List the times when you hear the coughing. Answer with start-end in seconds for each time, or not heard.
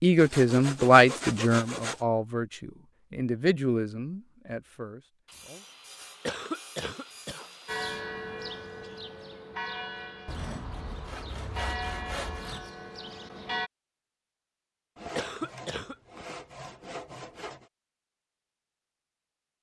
6.2-7.5, 15.2-15.9.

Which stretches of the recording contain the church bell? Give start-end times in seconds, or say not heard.
7.7-13.7.